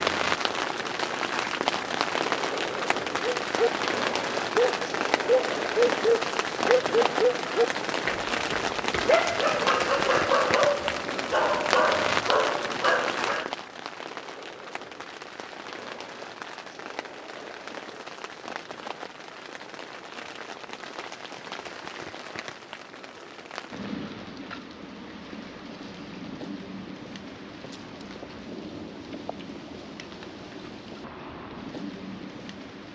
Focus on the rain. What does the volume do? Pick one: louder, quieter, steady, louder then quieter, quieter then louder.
quieter.